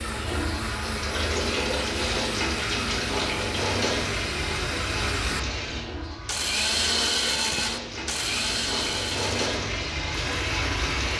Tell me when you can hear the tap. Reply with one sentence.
The tap can be heard from 0.0 to 11.1 s.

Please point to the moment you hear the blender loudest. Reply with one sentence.
The volume of the blender peaks at 7 seconds.